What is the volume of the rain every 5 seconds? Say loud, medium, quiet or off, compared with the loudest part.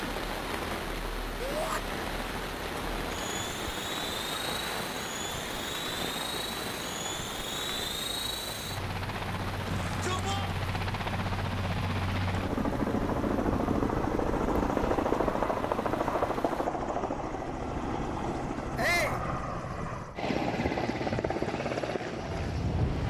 loud, loud, medium, medium, off.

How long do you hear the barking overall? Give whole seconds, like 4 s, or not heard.
not heard.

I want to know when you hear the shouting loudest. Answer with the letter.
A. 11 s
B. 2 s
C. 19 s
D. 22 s
C.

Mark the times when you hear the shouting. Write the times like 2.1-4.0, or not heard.
1.4-1.8, 9.7-10.6, 18.8-19.2.